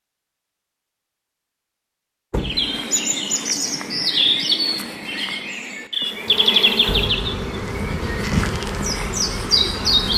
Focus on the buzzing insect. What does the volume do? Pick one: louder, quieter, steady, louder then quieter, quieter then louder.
steady.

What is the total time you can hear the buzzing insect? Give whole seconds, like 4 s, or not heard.
4 s.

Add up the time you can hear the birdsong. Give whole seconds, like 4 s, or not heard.
8 s.